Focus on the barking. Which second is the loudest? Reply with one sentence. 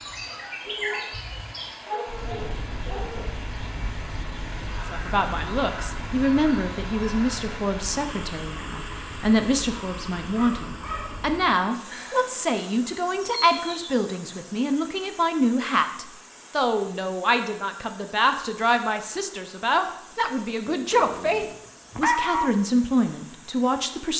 The loudest moment of the barking is at 22 seconds.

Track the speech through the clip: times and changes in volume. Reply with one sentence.
You can hear the speech from 4.9 to 24.1 s, at a steady volume.